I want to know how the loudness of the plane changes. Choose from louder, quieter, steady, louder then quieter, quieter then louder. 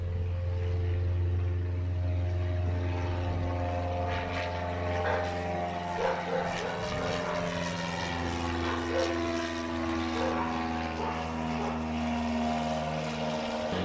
louder.